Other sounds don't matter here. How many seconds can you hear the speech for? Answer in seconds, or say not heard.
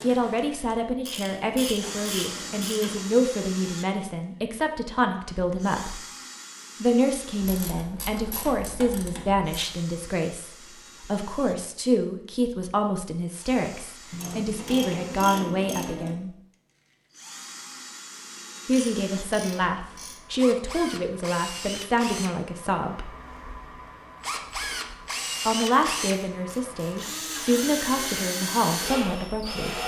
24 s.